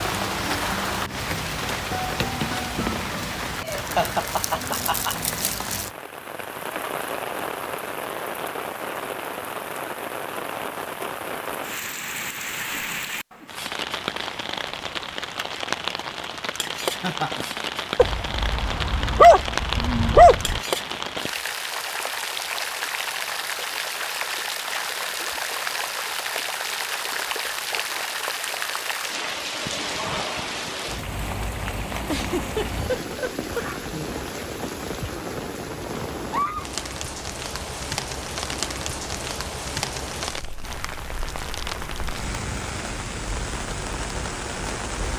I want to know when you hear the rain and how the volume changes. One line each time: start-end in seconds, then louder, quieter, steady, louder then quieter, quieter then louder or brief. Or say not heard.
0.0-45.1 steady.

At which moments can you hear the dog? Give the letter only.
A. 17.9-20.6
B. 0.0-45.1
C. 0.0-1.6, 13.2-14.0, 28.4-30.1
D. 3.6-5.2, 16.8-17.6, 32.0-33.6
A.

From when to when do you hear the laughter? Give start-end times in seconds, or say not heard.
3.6-5.2, 16.8-17.6, 32.0-33.6.